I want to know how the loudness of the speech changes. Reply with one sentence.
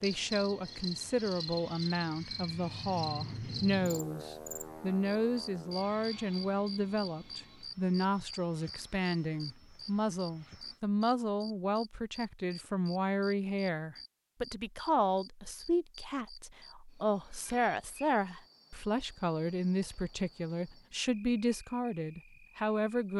The loudness of the speech stays about the same.